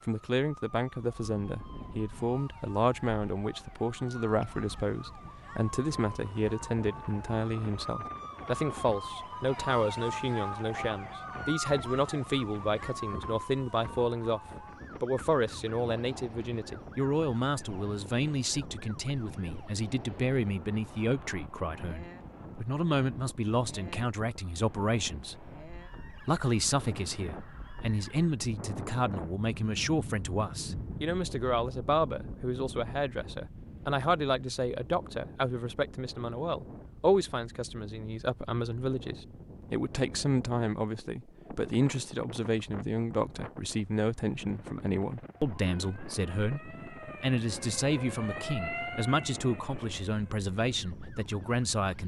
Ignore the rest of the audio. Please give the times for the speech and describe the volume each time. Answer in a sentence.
The speech can be heard from 0.1 to 14.4 s, at a steady volume; and from 15.0 to 52.0 s, at a steady volume.